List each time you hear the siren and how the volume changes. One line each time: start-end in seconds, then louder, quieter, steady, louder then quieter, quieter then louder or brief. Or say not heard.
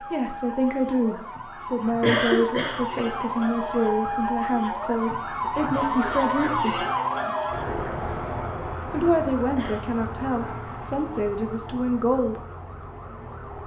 0.0-13.6 louder then quieter.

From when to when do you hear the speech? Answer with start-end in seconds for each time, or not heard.
0.0-6.8, 8.9-12.4.